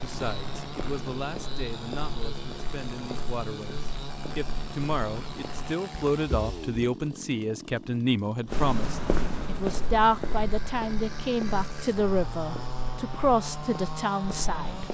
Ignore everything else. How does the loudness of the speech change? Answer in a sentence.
The volume of the speech goes up.